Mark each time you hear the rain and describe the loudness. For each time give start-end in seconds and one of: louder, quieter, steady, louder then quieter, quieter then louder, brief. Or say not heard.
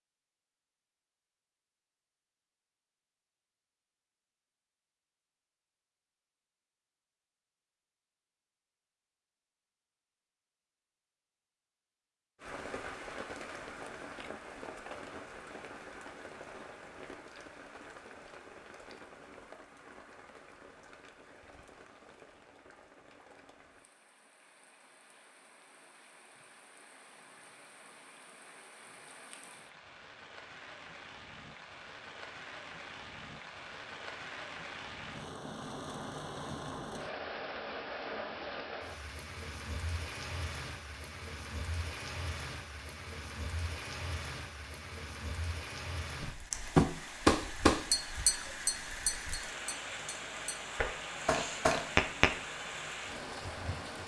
12.4-54.0 quieter then louder.